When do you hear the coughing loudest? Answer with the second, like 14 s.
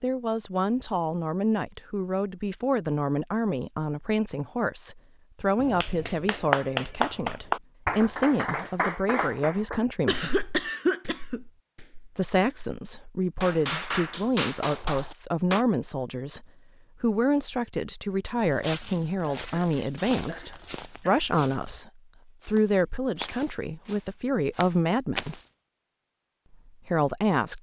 11 s.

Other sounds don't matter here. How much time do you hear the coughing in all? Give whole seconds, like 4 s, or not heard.
3 s.